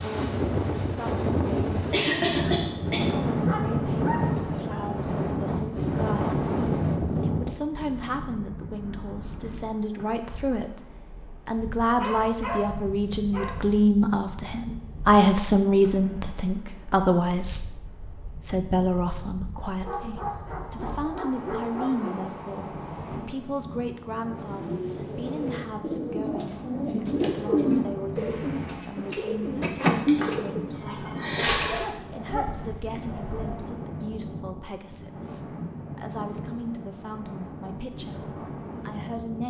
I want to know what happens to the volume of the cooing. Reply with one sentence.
The loudness of the cooing goes up, then down.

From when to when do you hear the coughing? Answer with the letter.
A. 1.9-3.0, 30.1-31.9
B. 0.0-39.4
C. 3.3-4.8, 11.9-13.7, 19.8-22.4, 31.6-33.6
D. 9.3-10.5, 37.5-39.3
A.